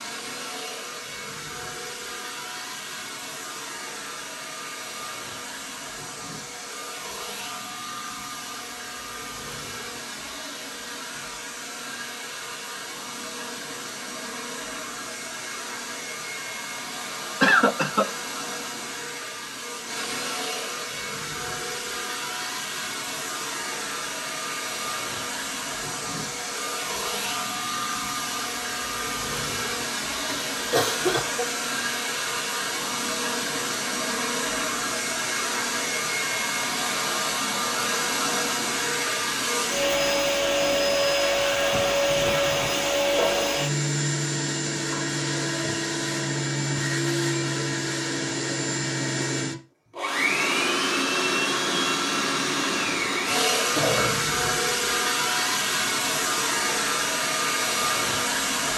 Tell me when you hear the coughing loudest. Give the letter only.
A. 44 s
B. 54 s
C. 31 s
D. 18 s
D.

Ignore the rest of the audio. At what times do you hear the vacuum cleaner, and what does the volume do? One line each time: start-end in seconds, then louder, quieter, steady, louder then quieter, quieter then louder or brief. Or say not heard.
0.0-58.7 louder.